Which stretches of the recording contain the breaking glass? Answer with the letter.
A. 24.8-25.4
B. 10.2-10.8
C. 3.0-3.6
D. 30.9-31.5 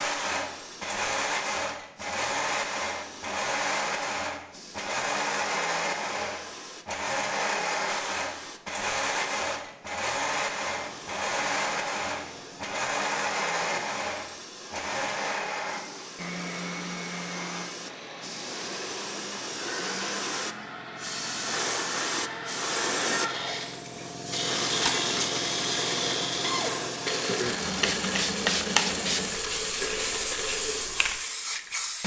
A.